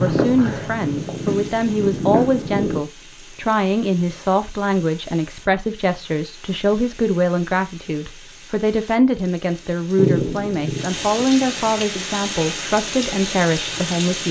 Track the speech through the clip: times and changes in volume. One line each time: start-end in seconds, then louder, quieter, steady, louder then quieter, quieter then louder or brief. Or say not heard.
0.0-14.2 steady.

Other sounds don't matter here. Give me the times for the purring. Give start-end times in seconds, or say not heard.
0.0-2.8, 9.9-11.6.